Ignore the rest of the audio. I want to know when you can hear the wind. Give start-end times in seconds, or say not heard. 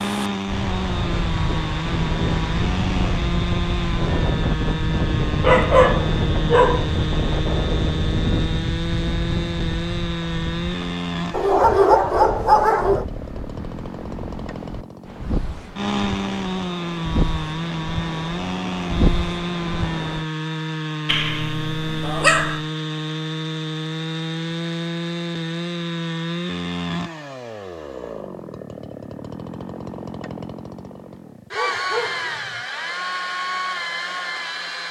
0.0-20.2.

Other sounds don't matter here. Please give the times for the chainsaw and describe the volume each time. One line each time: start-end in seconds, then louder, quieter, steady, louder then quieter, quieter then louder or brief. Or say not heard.
0.0-34.8 steady.